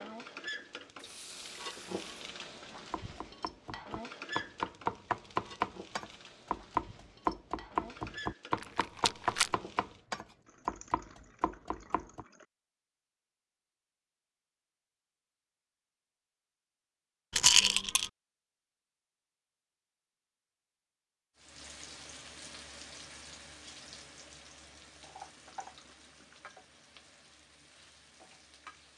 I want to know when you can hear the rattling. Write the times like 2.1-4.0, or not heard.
8.6-9.5, 17.3-18.1.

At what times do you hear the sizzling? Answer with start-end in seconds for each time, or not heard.
0.0-10.1, 21.4-28.9.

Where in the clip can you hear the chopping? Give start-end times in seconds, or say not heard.
2.9-12.2.